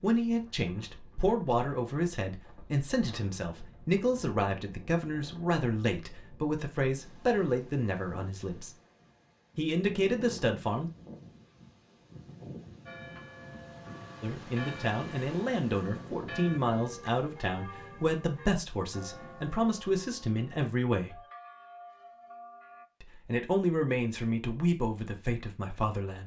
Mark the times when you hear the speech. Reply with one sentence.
You can hear the speech from 0.0 to 8.8 s, from 9.6 to 10.9 s, from 14.2 to 21.2 s and from 23.0 to 26.2 s.